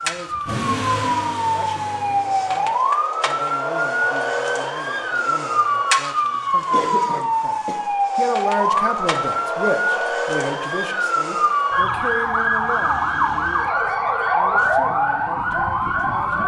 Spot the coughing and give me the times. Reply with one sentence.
The coughing can be heard from 6.3 to 7.8 s.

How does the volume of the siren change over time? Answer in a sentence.
The loudness of the siren stays about the same.